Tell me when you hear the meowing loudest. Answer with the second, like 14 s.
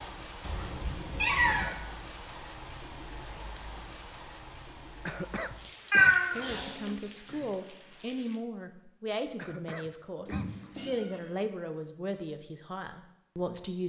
6 s.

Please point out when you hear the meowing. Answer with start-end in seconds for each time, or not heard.
0.4-1.8, 5.9-7.4, 10.2-11.2.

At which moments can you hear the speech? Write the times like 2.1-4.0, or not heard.
6.3-13.8.